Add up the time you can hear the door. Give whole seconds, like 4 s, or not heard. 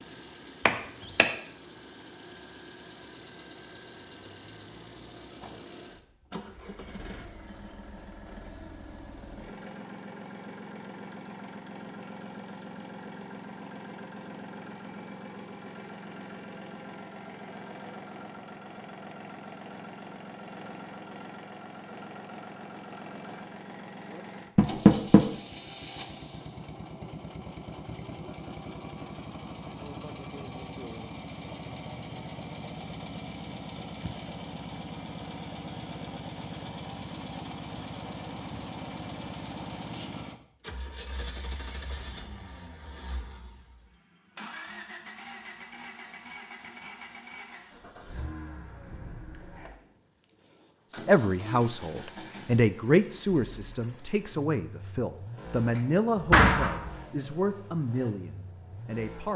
2 s.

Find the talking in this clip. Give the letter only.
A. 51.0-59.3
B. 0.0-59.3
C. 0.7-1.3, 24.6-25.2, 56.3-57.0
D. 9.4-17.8
A.